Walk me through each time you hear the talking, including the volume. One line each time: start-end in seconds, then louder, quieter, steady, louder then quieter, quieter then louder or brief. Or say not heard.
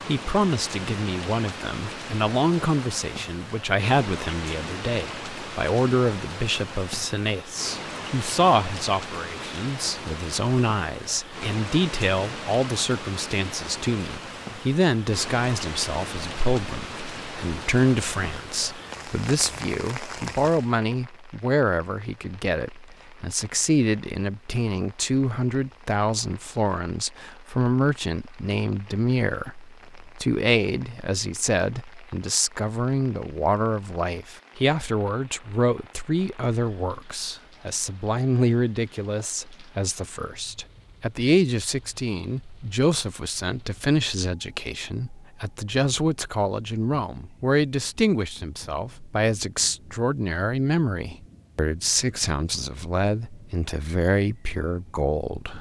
0.1-55.5 steady.